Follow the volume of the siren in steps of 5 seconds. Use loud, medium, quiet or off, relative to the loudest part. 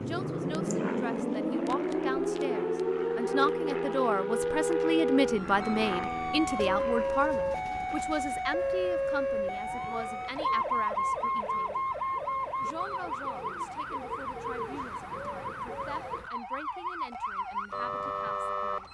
loud, loud, loud, medium.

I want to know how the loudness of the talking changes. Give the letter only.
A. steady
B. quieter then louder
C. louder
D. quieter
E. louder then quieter
E.